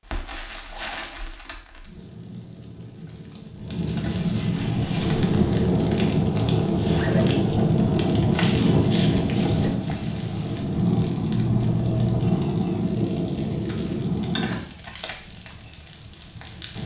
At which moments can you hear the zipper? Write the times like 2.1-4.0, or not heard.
0.7-1.1, 6.8-7.3, 11.3-12.3.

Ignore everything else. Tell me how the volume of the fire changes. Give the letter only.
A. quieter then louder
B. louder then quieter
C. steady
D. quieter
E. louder
B.